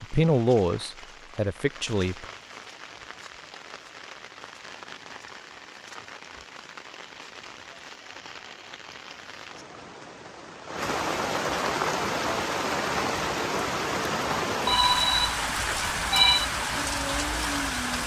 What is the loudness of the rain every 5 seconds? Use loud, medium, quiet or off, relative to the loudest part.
quiet, quiet, loud, loud.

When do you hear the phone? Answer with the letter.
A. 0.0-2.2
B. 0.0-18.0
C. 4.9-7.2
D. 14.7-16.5
D.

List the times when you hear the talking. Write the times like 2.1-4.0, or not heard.
0.0-2.2.